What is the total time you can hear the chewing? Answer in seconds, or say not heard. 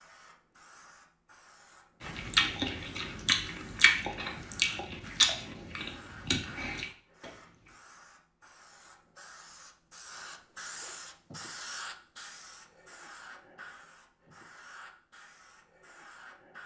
5 s.